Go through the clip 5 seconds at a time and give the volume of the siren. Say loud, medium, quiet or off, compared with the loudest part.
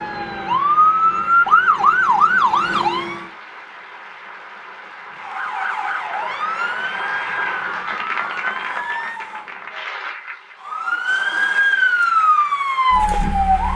loud, medium, loud.